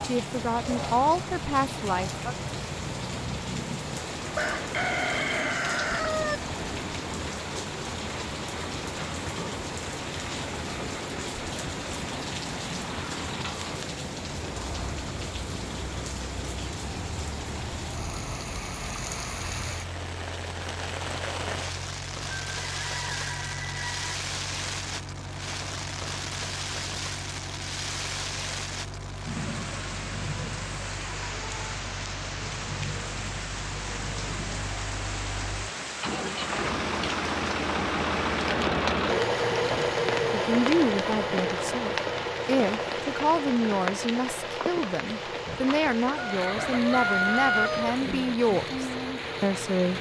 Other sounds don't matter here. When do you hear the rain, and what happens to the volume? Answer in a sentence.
The rain can be heard from 0.0 to 49.9 s, at a steady volume.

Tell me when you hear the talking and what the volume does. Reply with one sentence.
You can hear the talking briefly from 0.0 to 2.4 s; and from 40.3 to 49.9 s, at a steady volume.